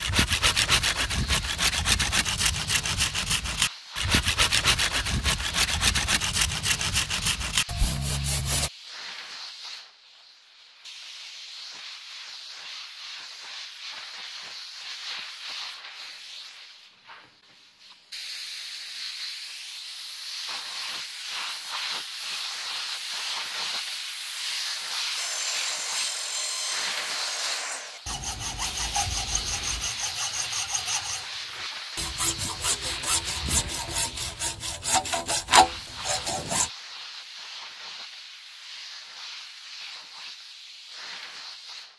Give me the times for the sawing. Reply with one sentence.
You can hear the sawing from 0.0 to 8.7 s and from 25.1 to 36.7 s.